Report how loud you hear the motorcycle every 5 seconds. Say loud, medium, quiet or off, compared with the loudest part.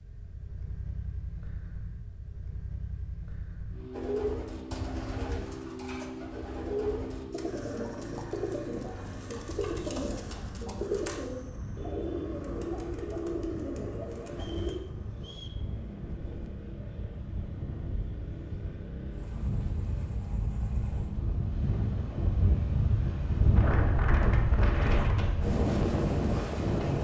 loud, loud, medium, medium, loud, off.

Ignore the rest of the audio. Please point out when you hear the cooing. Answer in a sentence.
The cooing can be heard from 3.9 to 14.8 s.